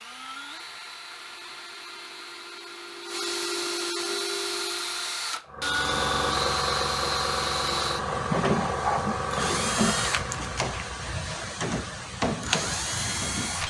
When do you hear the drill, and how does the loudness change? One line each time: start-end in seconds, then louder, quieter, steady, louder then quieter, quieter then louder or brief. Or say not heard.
0.0-13.6 louder.